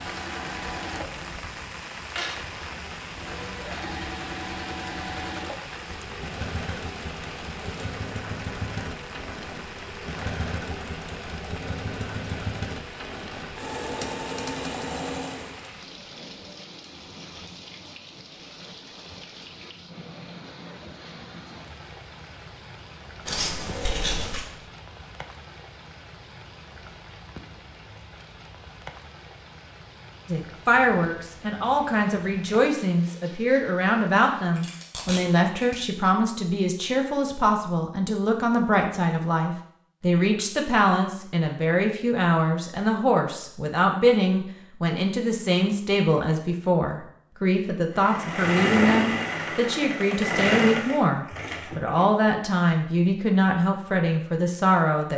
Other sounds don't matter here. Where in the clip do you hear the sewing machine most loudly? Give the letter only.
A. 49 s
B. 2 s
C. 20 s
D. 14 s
A.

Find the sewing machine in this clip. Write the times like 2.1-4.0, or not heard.
0.0-15.7, 48.0-52.1.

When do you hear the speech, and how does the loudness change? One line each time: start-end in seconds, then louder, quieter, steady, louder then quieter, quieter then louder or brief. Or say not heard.
30.2-55.1 steady.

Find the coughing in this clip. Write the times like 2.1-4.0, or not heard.
not heard.